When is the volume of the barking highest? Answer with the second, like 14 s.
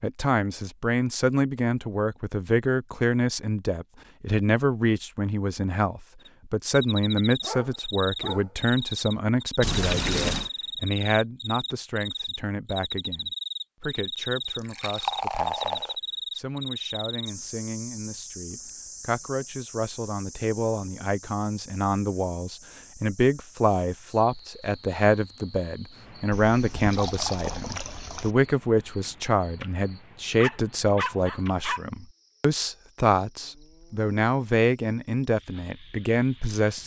31 s.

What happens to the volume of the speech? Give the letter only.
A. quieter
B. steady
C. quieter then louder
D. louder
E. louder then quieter
C.